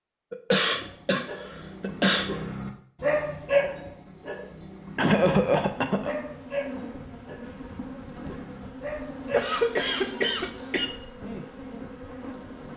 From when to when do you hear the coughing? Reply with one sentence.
You can hear the coughing from 0.3 to 2.3 s, from 5.0 to 6.2 s and from 9.3 to 10.8 s.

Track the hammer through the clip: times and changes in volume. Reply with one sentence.
You can't hear the hammer here.